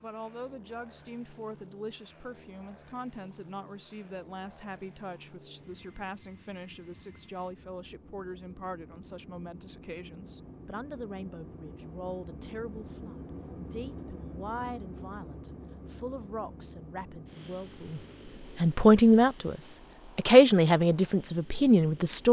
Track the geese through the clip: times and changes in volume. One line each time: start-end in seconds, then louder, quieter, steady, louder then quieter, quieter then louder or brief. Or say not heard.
not heard.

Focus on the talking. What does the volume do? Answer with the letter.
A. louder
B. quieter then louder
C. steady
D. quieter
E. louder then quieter
A.